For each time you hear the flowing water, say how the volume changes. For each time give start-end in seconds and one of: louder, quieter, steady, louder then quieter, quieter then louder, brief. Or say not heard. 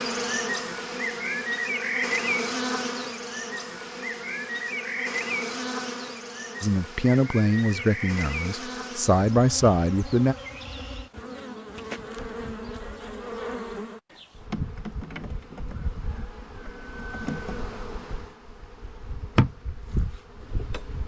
not heard.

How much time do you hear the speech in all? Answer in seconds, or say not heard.
4 s.